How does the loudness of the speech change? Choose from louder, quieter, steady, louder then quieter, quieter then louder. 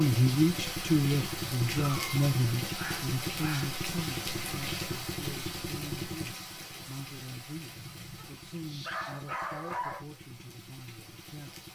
quieter.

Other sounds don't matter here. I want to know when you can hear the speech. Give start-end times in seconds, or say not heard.
0.0-11.6.